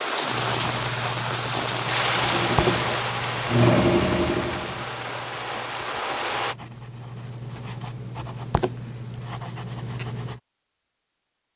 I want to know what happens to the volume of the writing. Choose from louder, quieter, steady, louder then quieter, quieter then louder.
quieter then louder.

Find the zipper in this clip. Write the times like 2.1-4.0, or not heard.
not heard.